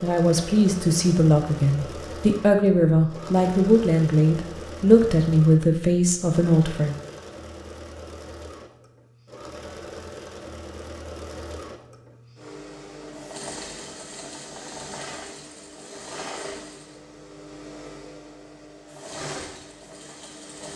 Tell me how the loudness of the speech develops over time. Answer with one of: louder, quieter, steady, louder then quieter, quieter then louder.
steady.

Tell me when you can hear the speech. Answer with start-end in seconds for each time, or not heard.
0.0-7.0.